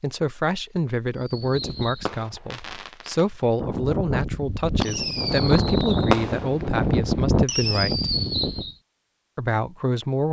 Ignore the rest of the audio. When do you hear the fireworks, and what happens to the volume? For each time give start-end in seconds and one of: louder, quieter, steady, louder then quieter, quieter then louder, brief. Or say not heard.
1.1-8.8 louder.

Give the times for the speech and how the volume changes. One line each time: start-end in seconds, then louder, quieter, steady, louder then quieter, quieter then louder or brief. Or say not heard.
0.0-8.1 steady
9.3-10.2 brief.